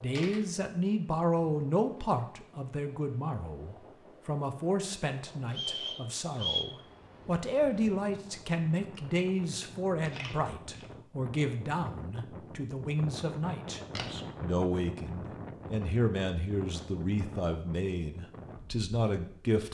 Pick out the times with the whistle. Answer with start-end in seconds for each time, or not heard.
5.5-6.7.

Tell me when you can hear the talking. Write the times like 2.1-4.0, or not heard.
0.0-19.6.